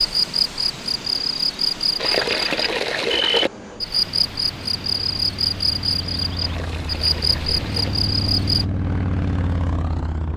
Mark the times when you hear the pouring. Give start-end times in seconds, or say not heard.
1.9-3.5, 6.4-7.9.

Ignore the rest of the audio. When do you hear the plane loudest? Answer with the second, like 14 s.
9 s.